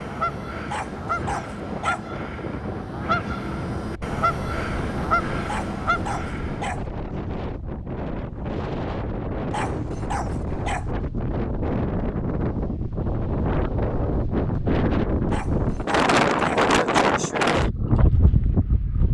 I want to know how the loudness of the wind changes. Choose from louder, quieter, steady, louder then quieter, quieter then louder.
louder.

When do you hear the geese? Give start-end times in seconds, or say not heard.
0.0-6.8.